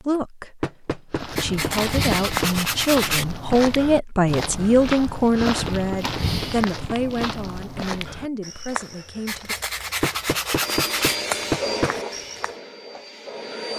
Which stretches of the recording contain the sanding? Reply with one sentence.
You can hear the sanding from 1.4 to 3.2 s and from 9.2 to 11.2 s.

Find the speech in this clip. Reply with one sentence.
The speech can be heard from 0.0 to 9.6 s.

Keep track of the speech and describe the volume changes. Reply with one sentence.
The loudness of the speech goes up, then down.